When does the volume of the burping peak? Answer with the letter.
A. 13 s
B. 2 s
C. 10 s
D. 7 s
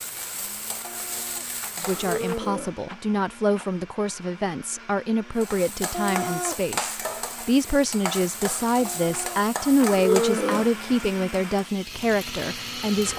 C.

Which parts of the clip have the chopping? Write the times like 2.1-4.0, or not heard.
not heard.